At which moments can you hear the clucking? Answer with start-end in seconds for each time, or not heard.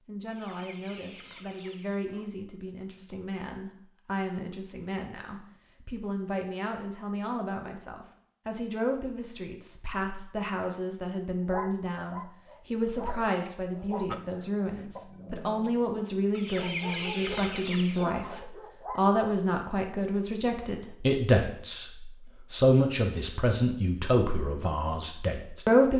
0.2-2.3, 16.3-18.4.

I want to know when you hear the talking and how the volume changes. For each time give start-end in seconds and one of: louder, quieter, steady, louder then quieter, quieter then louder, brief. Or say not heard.
0.1-25.9 louder.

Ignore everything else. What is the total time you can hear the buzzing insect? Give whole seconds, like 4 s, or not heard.
not heard.